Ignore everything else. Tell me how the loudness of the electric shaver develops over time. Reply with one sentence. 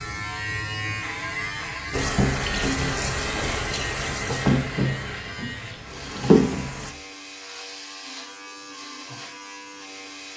The loudness of the electric shaver goes down.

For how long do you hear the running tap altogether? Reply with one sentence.
You can hear the running tap for 5 seconds altogether.